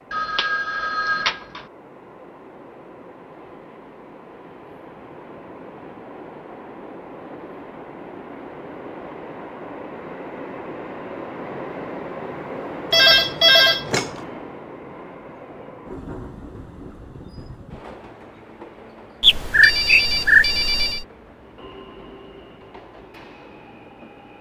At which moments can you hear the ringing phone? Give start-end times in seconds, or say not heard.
0.1-1.6, 12.9-14.1, 19.2-21.1.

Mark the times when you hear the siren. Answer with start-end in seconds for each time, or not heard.
not heard.